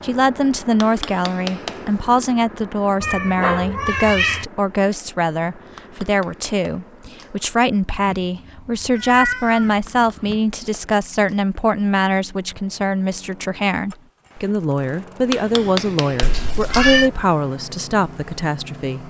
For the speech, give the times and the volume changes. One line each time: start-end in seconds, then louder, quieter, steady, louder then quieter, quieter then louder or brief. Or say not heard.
0.0-19.0 steady.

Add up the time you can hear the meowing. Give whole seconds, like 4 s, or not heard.
5 s.